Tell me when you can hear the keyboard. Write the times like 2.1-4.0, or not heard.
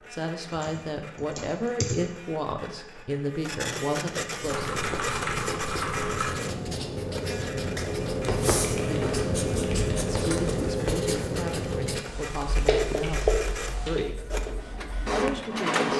0.6-2.0, 4.5-6.5, 8.6-10.0, 12.1-14.1.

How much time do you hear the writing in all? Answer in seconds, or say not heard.
11 s.